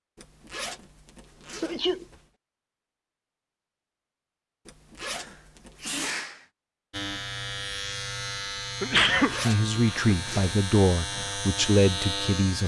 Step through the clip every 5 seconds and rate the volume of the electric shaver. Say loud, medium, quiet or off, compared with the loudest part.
off, loud, loud.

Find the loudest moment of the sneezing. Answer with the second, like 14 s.
9 s.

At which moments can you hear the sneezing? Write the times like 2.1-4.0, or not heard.
1.6-2.0, 5.1-6.5, 8.8-10.2.